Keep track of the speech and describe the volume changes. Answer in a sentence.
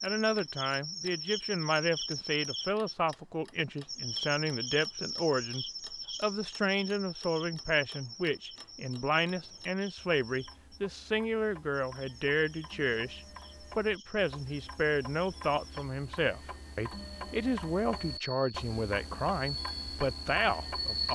The loudness of the speech stays about the same.